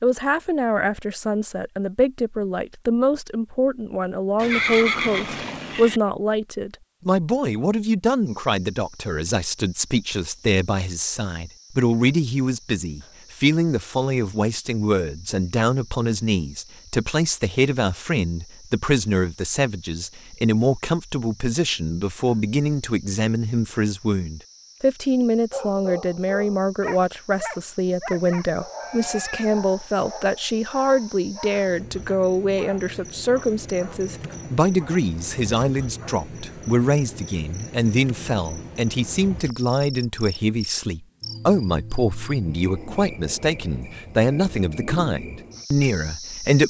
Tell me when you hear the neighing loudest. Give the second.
5 s.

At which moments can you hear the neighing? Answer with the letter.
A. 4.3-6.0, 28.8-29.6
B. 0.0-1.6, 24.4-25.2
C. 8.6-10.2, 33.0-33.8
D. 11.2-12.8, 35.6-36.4
A.